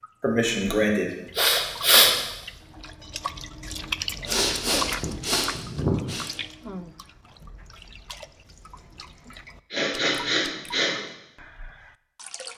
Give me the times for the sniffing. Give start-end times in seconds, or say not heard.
0.2-2.1, 4.2-6.3, 9.7-11.0.